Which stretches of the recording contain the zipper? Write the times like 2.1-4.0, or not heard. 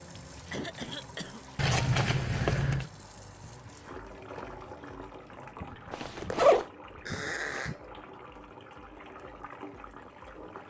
1.6-2.9, 5.9-6.7.